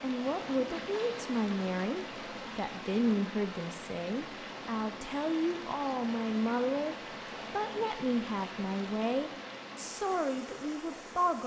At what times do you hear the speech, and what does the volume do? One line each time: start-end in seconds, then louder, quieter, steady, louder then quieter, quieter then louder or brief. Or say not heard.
0.0-11.4 steady.